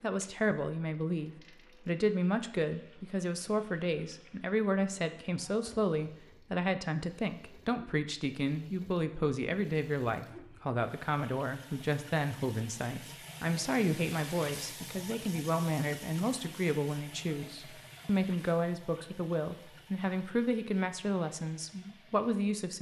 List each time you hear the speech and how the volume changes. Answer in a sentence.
You can hear the speech from 0.0 to 22.7 s, at a steady volume.